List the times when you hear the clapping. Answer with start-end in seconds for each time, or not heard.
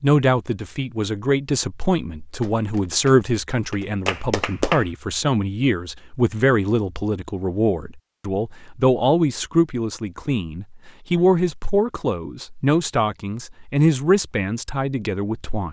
2.3-4.9.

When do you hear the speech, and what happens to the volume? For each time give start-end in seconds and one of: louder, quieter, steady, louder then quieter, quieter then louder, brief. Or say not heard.
0.0-15.6 steady.